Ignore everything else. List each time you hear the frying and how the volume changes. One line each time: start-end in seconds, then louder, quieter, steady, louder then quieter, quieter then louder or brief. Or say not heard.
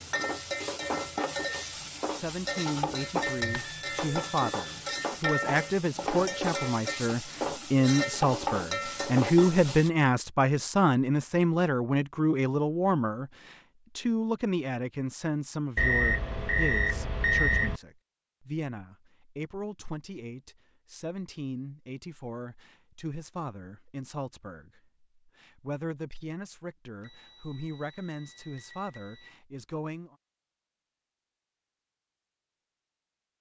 0.0-9.9 steady.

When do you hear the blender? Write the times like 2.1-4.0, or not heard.
not heard.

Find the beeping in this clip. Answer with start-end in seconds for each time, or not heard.
3.4-4.8, 15.8-17.8, 27.0-29.3.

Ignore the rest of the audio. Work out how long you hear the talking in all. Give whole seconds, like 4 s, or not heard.
28 s.